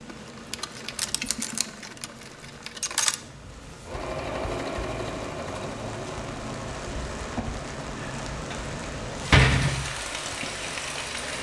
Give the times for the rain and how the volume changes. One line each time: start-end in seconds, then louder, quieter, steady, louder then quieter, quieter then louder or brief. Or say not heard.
0.0-11.3 louder.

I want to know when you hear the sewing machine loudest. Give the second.
3 s.